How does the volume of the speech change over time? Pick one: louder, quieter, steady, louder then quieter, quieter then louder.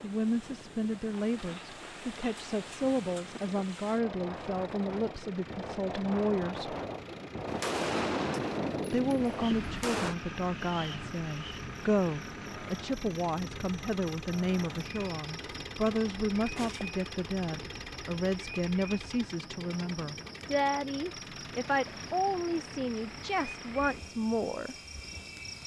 steady.